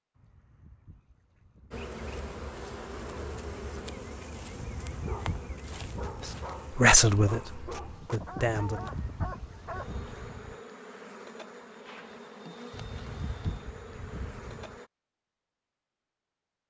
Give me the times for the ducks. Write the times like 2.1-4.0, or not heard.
0.1-1.9, 4.5-6.6, 8.6-10.6, 12.7-14.8.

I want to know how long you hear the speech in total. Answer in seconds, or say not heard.
3 s.